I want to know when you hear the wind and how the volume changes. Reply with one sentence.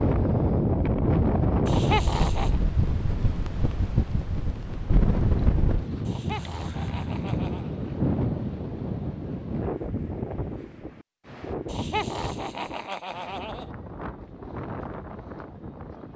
The wind can be heard from 0.0 to 16.1 s, getting quieter.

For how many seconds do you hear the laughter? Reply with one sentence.
You can hear the laughter for 5 seconds altogether.